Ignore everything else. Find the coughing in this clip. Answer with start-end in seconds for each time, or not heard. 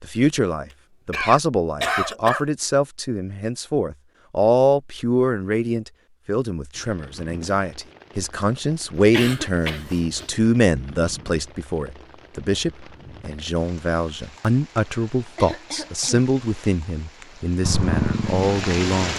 1.1-2.5, 9.1-10.3, 15.2-16.2.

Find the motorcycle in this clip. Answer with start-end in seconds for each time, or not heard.
17.6-19.1.